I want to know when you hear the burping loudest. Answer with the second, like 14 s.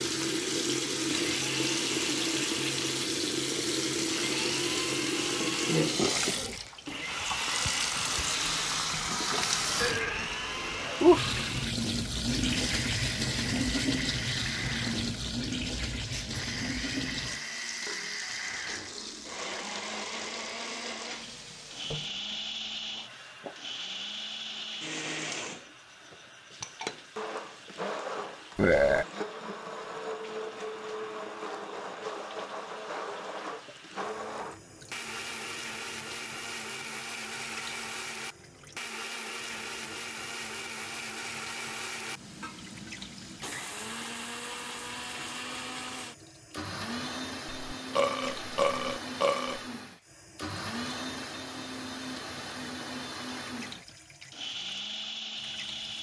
29 s.